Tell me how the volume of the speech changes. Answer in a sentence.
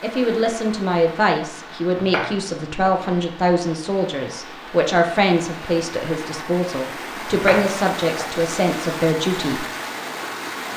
The loudness of the speech stays about the same.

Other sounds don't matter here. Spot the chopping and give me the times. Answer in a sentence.
The chopping can be heard from 1.9 to 3.1 s and from 7.2 to 8.5 s.